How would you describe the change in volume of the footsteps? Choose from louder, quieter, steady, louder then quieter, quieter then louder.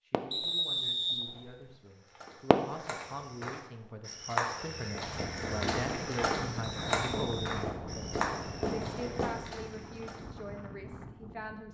louder then quieter.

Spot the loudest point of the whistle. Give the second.
1 s.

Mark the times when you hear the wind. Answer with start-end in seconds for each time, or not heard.
5.0-11.7.